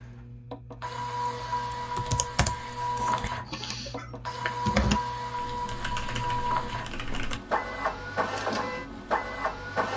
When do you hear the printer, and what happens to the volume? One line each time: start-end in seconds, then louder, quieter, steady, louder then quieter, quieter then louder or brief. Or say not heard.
0.0-9.9 steady.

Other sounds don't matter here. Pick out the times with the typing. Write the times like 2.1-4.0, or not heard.
1.8-7.4.